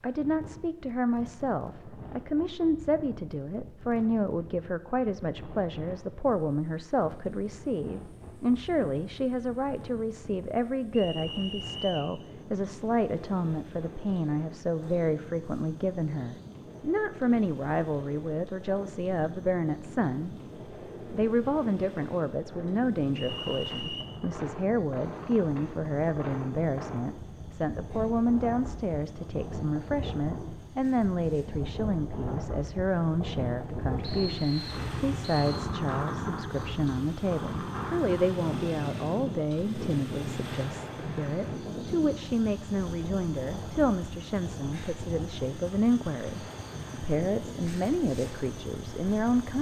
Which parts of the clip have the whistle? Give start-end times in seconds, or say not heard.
10.9-12.1, 23.1-24.1, 34.0-35.6.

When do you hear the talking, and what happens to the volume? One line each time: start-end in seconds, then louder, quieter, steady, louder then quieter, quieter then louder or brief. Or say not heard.
0.0-20.4 steady
21.1-49.5 steady.